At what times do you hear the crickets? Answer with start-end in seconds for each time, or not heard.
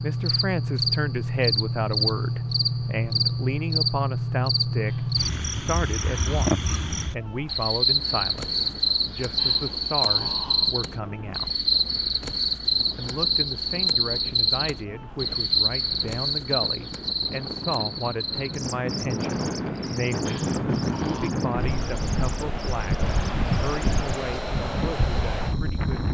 0.0-26.0.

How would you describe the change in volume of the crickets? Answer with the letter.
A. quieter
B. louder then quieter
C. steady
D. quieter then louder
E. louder
A.